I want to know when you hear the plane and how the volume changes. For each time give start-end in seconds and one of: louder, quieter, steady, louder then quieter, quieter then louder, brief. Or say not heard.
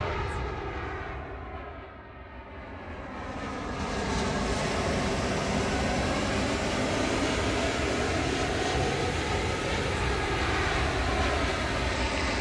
0.0-12.3 louder.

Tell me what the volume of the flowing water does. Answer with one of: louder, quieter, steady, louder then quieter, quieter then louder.
steady.